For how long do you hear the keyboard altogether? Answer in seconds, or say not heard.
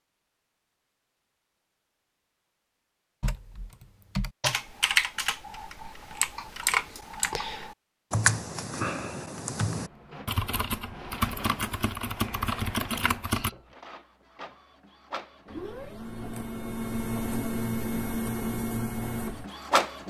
10 s.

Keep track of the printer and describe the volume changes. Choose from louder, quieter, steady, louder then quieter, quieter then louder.
louder.